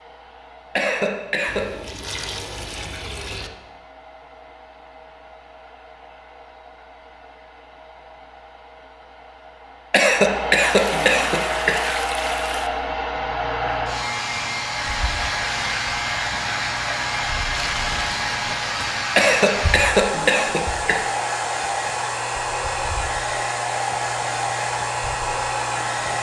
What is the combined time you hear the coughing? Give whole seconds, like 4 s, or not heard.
5 s.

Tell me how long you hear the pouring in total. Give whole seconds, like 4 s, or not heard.
5 s.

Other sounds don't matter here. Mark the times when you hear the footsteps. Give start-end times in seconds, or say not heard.
not heard.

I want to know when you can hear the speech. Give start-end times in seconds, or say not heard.
not heard.